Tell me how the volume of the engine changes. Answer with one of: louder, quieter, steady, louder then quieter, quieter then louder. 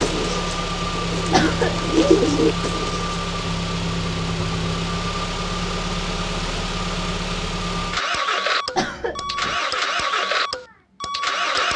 steady.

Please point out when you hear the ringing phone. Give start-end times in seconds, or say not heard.
not heard.